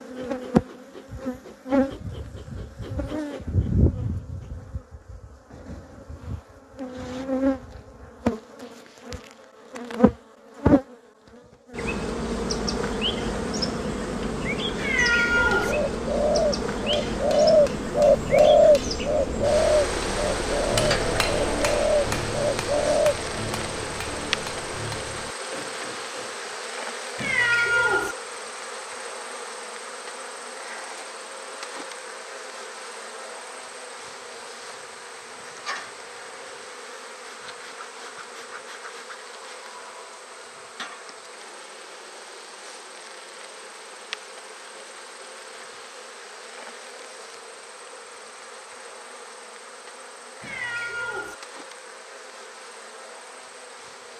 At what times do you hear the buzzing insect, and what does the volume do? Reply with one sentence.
The buzzing insect can be heard from 0.0 to 54.1 s, getting quieter.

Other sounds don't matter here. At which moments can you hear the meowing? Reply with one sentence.
The meowing can be heard from 14.8 to 15.8 s, from 27.1 to 28.1 s and from 50.4 to 51.4 s.